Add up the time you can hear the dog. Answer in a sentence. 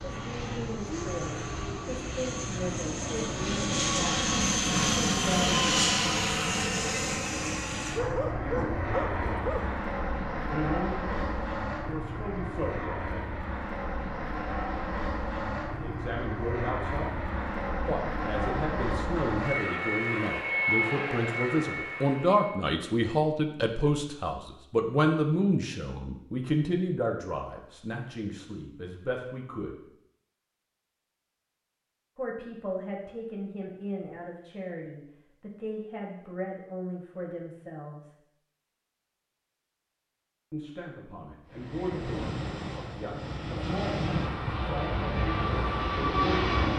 You can hear the dog for 2 seconds altogether.